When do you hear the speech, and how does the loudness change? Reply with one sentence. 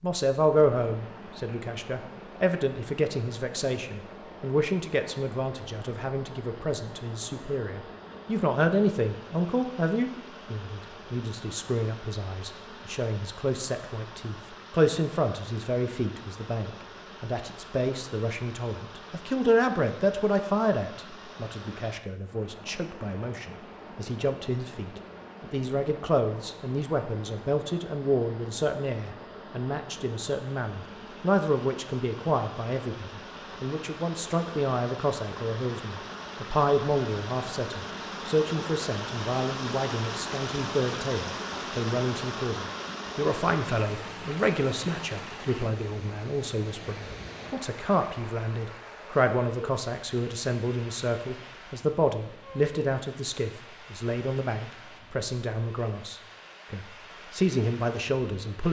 The speech can be heard from 0.0 to 58.6 s, at a steady volume.